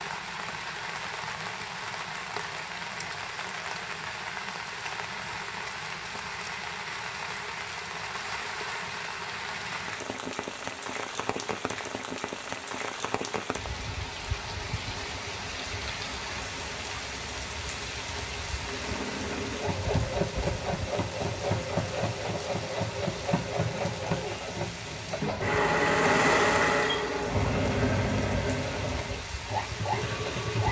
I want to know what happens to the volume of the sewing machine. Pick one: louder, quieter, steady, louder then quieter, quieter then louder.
louder then quieter.